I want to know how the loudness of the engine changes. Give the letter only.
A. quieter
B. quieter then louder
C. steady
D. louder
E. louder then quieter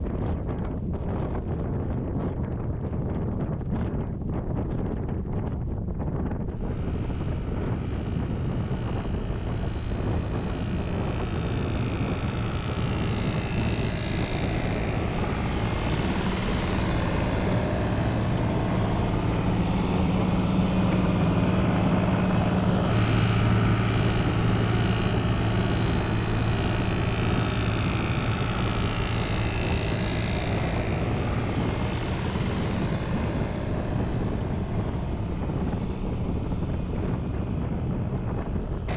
E.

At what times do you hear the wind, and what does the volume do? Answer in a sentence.
You can hear the wind from 0.0 to 38.9 s, at a steady volume.